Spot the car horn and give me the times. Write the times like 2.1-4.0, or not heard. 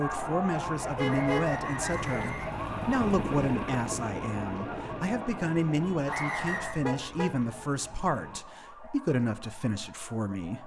0.9-2.3, 6.7-7.3.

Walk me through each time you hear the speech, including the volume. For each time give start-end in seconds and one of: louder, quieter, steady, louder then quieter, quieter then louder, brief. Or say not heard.
0.0-10.6 steady.